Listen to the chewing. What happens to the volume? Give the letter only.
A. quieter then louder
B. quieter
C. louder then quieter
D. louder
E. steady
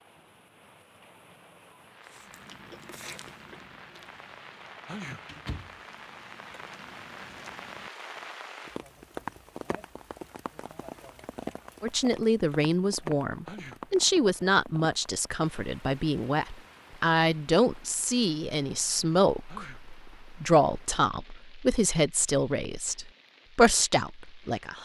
A.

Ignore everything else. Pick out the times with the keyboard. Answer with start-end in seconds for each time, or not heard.
not heard.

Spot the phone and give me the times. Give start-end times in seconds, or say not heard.
not heard.